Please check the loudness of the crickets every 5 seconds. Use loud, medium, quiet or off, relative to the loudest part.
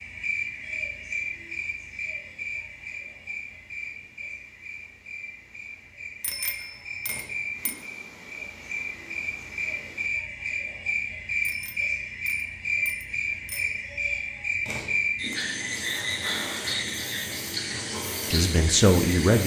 medium, medium, loud, loud.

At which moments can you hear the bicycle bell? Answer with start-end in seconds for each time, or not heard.
6.2-7.8, 11.4-13.8.